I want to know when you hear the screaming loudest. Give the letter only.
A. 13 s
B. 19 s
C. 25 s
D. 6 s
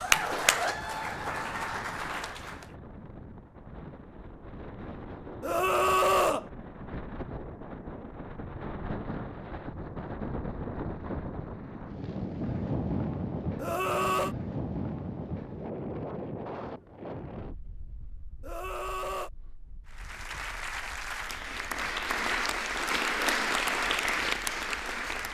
D.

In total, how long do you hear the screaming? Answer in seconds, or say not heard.
3 s.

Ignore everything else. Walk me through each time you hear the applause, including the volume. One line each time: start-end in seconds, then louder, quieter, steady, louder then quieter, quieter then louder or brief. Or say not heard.
0.0-2.8 brief
19.9-25.2 louder.